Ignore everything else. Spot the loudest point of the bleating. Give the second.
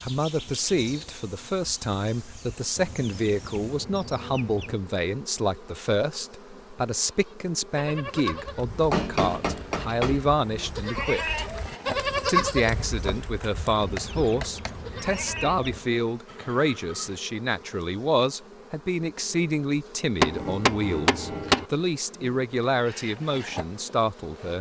12 s.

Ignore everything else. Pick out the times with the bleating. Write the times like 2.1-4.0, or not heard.
7.0-17.2.